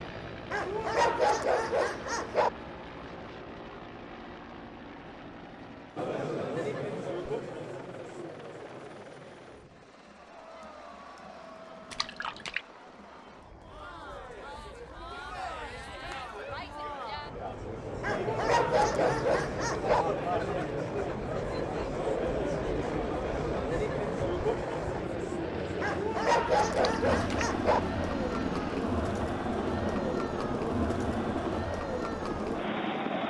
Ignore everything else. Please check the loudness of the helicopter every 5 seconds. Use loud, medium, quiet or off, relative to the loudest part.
medium, quiet, quiet, quiet, medium, loud, loud.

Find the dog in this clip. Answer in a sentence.
The dog can be heard from 0.5 to 2.5 s, from 18.0 to 20.1 s and from 25.8 to 27.8 s.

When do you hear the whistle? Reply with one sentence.
You can't hear the whistle here.